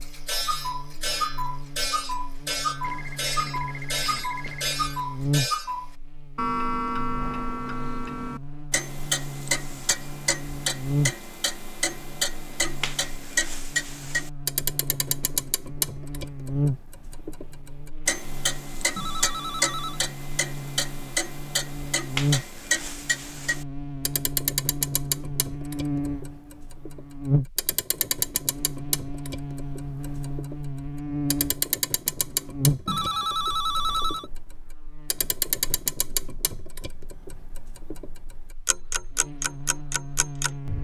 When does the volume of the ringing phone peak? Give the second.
34 s.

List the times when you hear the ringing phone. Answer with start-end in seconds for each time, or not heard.
2.8-4.8, 18.9-20.0, 32.9-34.3.